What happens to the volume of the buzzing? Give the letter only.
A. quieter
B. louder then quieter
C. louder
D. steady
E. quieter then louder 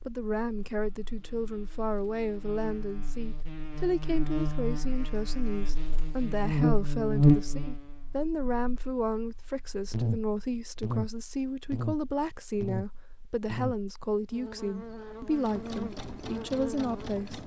B.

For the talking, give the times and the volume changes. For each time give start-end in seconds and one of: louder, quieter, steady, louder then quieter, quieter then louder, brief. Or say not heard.
0.1-17.4 steady.